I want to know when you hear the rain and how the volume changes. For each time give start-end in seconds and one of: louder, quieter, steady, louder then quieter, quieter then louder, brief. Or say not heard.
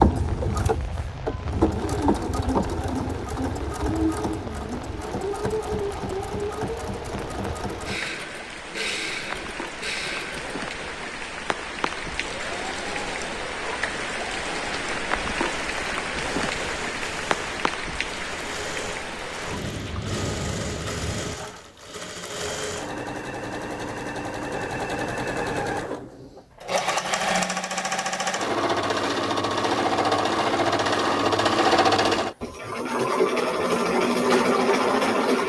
0.0-21.4 louder.